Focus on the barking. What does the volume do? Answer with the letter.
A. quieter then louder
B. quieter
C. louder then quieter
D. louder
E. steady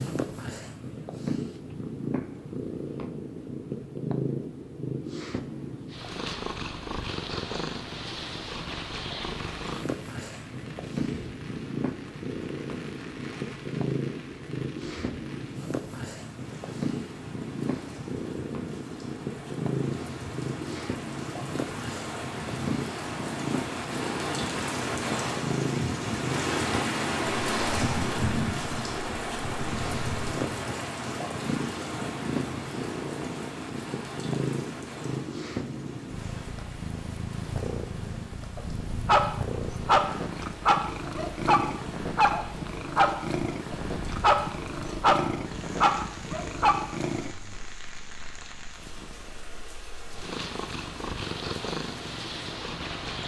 E.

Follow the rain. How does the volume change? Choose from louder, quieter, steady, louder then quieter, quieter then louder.
louder then quieter.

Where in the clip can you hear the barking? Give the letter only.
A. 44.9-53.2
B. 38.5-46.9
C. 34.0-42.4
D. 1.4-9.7
B.